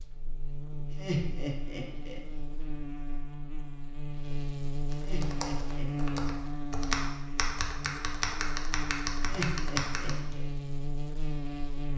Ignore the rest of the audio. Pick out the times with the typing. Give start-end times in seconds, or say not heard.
4.9-10.4.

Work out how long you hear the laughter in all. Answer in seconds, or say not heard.
4 s.